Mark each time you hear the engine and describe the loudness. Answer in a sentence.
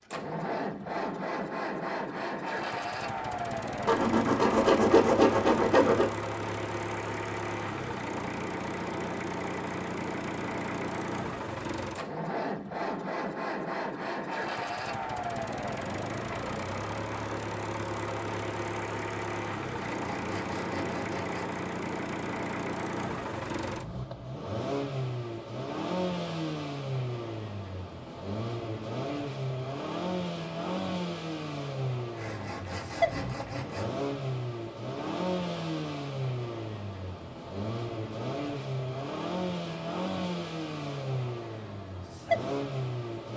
The engine can be heard from 0.0 to 43.3 s, at a steady volume.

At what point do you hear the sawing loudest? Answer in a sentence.
The volume of the sawing peaks at 5 seconds.